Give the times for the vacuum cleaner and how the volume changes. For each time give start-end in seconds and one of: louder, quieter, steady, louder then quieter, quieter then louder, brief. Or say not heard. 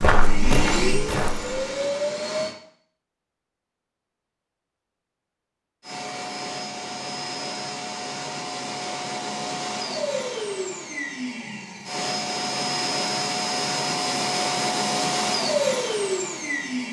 0.0-2.5 brief
5.8-16.8 louder.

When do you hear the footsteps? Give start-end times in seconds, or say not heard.
0.0-1.6.